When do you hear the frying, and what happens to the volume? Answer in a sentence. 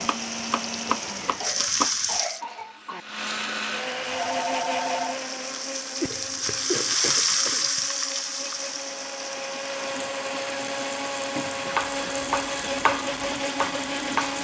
You can hear the frying briefly from 0.0 to 2.4 s; and from 4.2 to 14.3 s, getting louder then quieter.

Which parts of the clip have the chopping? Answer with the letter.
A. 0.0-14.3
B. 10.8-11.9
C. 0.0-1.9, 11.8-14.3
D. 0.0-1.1
C.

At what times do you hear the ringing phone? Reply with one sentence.
The ringing phone can be heard from 4.0 to 5.2 s.